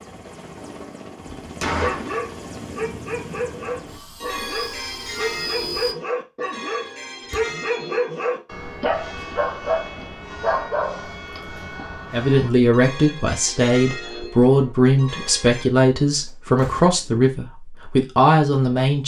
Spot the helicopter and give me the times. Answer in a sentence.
The helicopter can be heard from 0.0 to 6.0 s.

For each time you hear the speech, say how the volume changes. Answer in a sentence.
The speech can be heard from 12.1 to 19.0 s, at a steady volume.